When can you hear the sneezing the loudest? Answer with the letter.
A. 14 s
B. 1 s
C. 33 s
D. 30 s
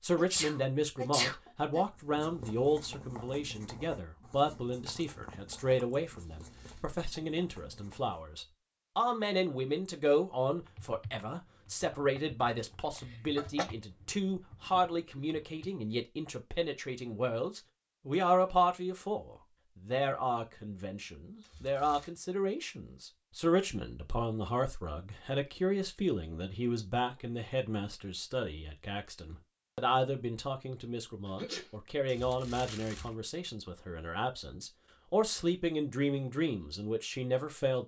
B.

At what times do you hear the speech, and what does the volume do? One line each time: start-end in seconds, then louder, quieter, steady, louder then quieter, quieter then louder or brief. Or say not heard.
0.0-37.8 steady.